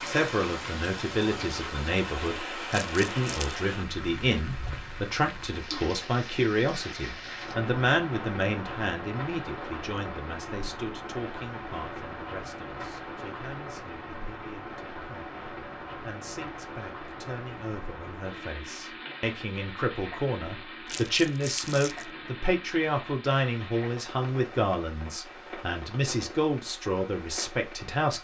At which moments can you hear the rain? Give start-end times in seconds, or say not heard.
0.0-28.1.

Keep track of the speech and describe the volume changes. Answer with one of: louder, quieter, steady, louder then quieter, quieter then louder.
quieter then louder.